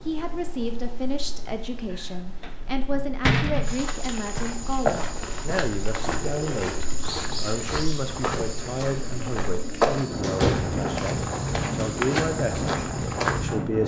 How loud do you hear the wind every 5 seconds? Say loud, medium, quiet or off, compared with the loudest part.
quiet, medium, loud.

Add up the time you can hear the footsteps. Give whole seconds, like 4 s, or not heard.
10 s.